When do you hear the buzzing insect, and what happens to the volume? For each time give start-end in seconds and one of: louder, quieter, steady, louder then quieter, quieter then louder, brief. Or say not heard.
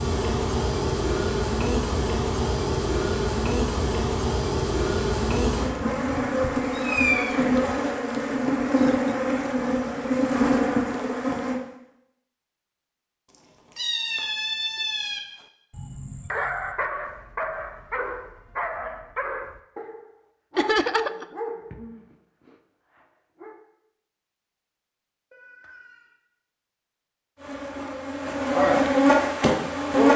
0.0-11.6 steady
27.4-30.1 brief.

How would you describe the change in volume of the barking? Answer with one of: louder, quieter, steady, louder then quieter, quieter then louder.
quieter.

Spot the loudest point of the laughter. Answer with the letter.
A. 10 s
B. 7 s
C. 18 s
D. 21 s
D.